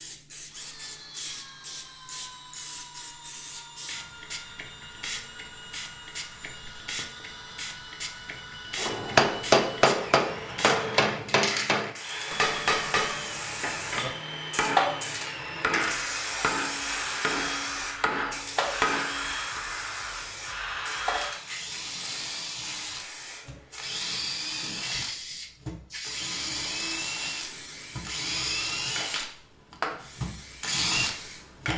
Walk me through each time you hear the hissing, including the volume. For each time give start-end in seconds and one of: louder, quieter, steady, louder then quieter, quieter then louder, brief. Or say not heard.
0.0-31.7 louder then quieter.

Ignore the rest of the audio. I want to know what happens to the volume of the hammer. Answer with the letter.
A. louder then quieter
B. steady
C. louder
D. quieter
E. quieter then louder
D.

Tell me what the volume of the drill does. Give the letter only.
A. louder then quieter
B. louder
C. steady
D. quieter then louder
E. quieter
B.